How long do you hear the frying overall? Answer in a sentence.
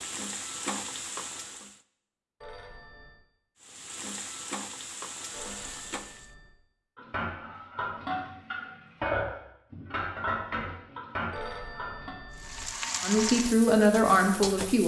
The frying can be heard for 7 seconds in total.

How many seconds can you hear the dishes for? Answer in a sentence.
The dishes can be heard for 5 seconds in total.